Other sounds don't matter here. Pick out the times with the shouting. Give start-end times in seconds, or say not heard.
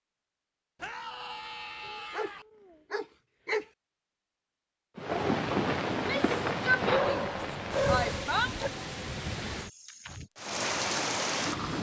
0.8-2.5, 6.0-8.6.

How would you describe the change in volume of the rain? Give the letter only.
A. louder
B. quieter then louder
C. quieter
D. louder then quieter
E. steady
B.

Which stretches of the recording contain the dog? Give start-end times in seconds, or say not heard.
1.9-2.3, 2.9-3.6, 6.8-8.7.